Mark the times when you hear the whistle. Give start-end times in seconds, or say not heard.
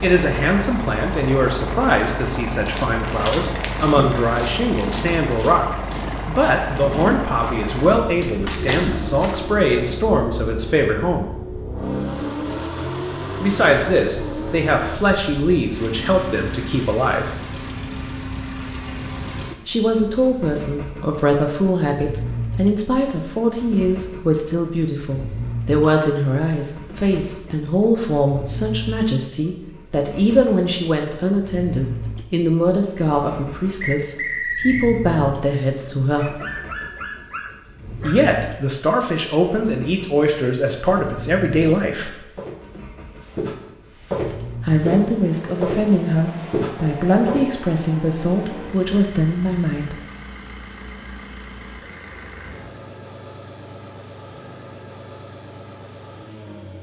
33.8-34.9.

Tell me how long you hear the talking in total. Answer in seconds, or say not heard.
41 s.